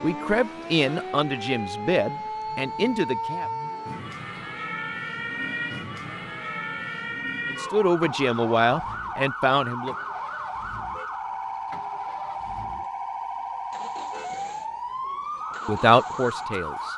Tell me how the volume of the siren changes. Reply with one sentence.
The volume of the siren stays about the same.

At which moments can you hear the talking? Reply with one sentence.
You can hear the talking from 0.0 to 3.5 s, from 7.5 to 9.9 s and from 15.7 to 16.9 s.